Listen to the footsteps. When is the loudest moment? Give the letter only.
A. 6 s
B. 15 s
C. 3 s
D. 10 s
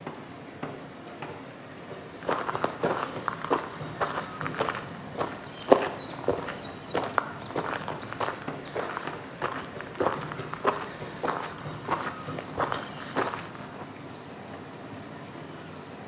A.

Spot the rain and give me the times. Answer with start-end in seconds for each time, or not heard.
0.0-16.0.